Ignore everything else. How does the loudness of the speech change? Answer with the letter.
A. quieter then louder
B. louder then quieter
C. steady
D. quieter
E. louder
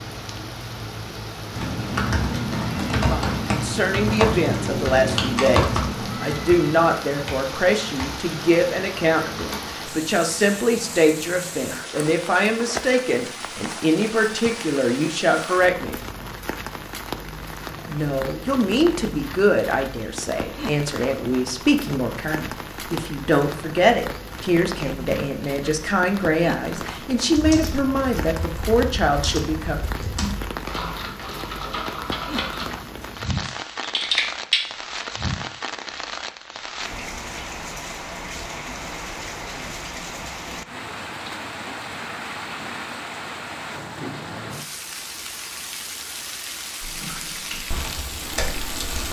C.